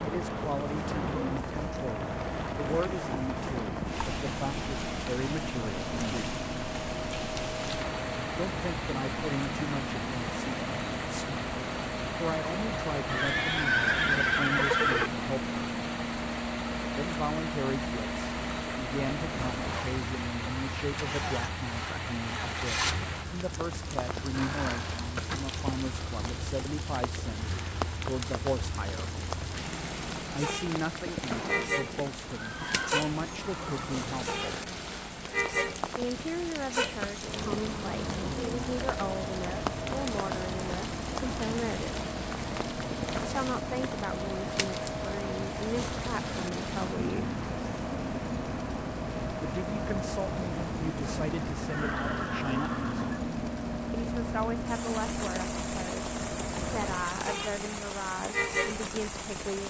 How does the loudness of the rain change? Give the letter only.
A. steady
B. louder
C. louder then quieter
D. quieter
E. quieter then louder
A.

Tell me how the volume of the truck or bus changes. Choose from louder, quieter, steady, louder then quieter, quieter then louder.
steady.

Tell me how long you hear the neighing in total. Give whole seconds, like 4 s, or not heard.
6 s.